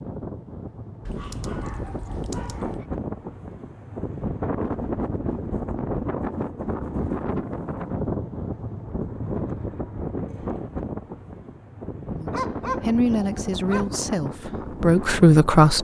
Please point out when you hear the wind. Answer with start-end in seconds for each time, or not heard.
0.0-15.7.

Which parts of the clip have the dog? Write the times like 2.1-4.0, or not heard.
1.1-2.9, 12.3-13.9.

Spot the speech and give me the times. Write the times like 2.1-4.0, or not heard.
12.1-15.7.